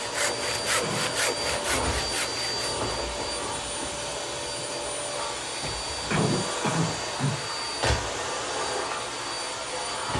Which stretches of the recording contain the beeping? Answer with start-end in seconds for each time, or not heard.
not heard.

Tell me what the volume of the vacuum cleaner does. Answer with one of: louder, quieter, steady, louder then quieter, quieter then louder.
steady.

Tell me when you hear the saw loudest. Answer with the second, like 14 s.
1 s.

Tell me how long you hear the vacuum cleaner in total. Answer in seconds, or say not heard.
10 s.